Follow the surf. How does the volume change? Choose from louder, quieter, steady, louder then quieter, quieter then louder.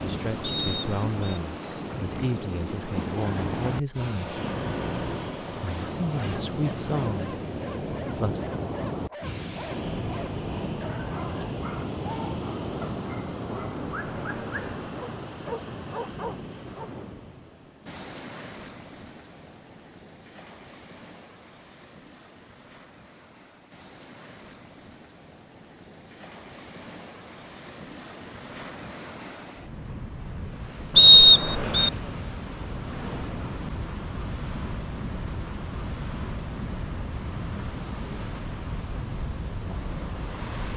quieter then louder.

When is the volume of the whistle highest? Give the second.
31 s.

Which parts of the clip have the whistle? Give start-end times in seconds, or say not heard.
0.4-1.4, 30.9-31.9.